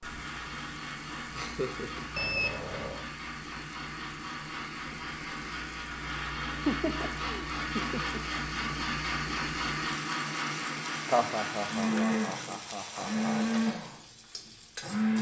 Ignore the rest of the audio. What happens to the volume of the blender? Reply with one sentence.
The volume of the blender goes up.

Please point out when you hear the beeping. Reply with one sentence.
You can hear the beeping from 2.1 to 3.0 s.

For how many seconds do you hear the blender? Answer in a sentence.
The blender can be heard for 15 seconds in total.